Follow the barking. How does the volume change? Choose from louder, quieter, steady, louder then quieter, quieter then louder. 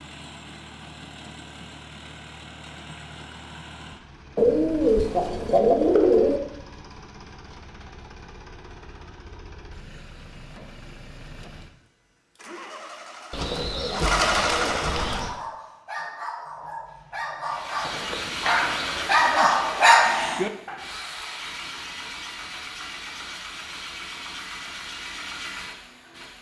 louder.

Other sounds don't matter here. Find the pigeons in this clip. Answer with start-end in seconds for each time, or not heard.
4.3-6.4, 13.3-15.3, 17.8-19.2.